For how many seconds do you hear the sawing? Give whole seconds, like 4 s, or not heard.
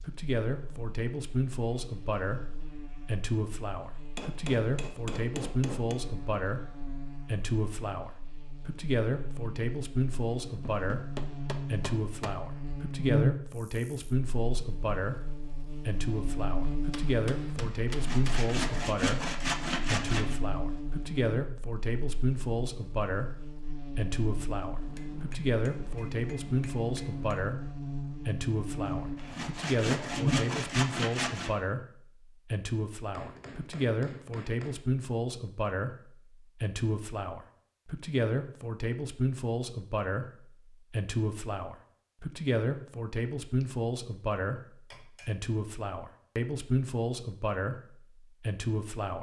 5 s.